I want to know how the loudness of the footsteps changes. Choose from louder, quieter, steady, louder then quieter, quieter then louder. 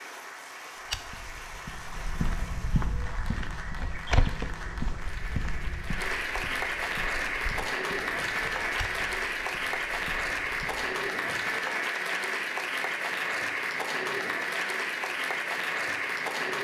quieter.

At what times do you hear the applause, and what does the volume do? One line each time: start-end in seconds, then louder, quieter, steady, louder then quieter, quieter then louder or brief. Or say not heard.
0.0-16.5 louder.